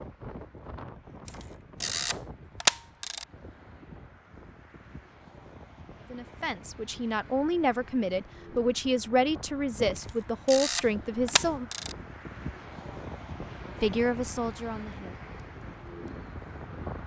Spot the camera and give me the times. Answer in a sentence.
You can hear the camera from 1.2 to 3.2 s and from 9.9 to 11.9 s.